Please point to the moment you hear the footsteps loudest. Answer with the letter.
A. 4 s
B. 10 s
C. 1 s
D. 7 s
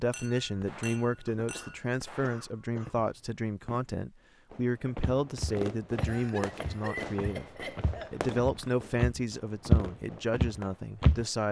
B.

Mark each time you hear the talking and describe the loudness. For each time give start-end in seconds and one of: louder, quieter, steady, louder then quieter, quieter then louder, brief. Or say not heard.
0.0-11.4 steady.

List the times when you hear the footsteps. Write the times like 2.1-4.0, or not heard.
5.0-11.2.